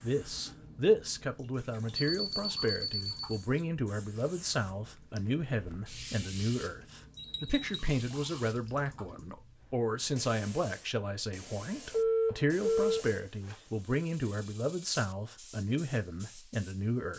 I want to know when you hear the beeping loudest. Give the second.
12 s.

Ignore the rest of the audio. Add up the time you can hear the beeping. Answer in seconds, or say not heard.
3 s.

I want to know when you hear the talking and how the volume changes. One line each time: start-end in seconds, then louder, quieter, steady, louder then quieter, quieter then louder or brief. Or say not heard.
0.0-17.1 steady.